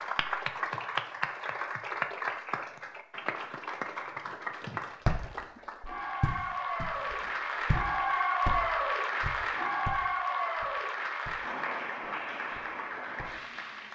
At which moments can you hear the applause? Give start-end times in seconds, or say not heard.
0.0-13.9.